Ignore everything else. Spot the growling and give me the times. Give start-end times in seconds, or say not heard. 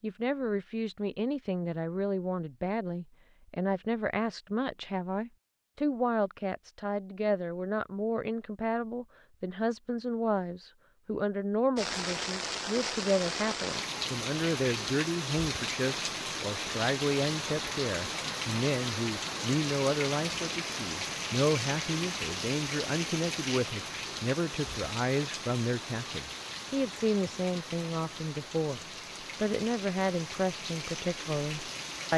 not heard.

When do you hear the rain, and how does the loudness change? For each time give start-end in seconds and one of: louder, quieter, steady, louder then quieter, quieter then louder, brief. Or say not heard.
11.8-32.1 quieter.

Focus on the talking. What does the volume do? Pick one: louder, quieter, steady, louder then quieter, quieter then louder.
steady.